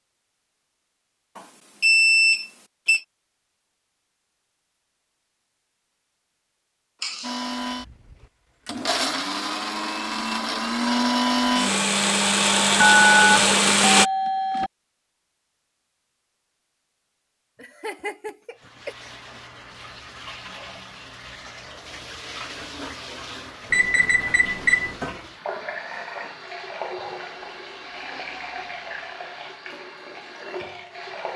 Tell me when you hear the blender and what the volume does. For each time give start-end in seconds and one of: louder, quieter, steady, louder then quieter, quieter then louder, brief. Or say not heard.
7.2-14.1 louder.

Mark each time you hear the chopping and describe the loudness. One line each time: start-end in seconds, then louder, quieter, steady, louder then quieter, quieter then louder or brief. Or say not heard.
not heard.